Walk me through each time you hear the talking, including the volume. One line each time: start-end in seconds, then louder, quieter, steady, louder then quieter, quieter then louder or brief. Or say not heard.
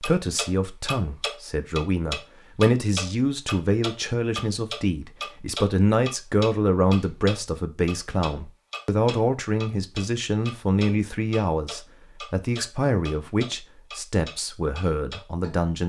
0.0-15.8 steady.